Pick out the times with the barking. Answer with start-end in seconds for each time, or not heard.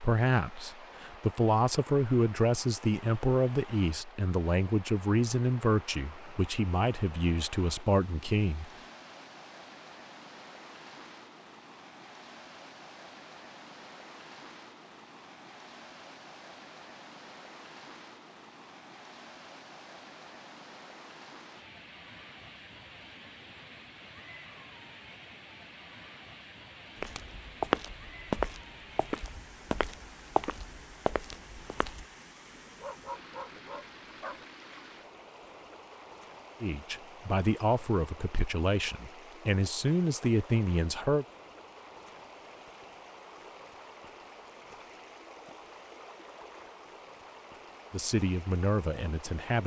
32.8-34.5.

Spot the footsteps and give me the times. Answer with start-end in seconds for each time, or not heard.
26.9-32.0.